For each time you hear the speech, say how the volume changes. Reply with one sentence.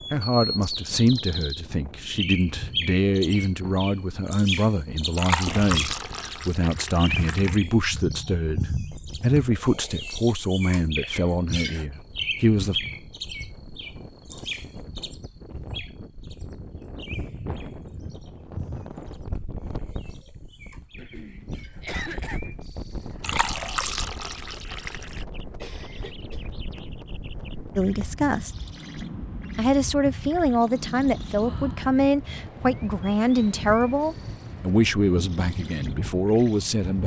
You can hear the speech from 0.1 to 12.8 s, at a steady volume; briefly from 27.8 to 28.5 s; and from 29.6 to 37.0 s, at a steady volume.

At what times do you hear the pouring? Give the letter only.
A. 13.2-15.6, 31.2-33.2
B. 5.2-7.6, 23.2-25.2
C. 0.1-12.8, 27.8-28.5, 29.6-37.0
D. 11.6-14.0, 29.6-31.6
B.